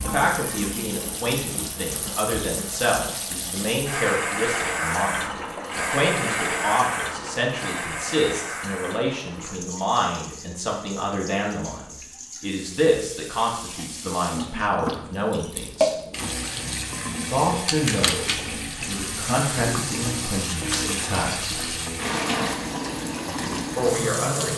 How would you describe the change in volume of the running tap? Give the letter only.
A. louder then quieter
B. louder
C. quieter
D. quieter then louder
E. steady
D.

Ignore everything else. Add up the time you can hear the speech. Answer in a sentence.
You can hear the speech for 21 seconds altogether.